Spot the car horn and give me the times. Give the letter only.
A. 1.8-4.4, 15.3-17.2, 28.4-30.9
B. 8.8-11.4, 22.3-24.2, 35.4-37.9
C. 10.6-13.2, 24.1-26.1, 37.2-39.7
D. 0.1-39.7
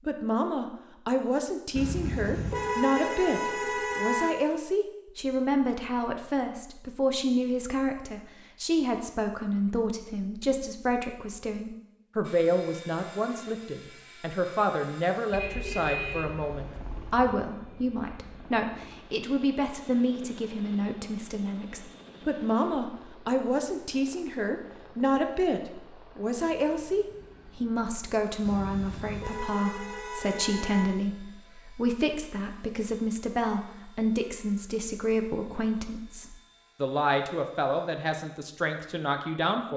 A.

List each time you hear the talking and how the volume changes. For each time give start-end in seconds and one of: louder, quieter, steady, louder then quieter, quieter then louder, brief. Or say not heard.
0.1-39.7 steady.